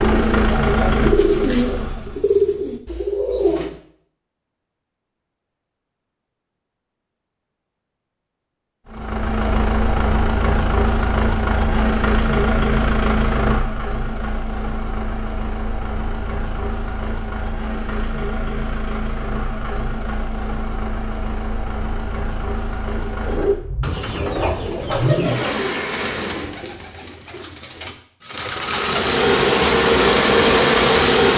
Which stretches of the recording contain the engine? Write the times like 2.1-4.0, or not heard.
0.0-2.2, 8.8-26.6, 28.6-31.3.